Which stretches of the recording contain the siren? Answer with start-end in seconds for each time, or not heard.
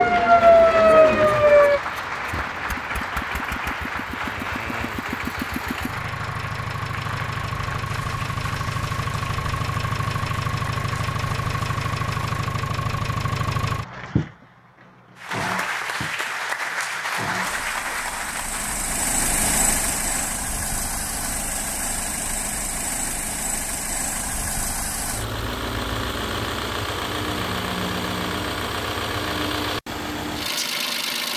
0.0-1.8.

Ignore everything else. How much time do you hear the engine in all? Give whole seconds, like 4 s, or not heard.
31 s.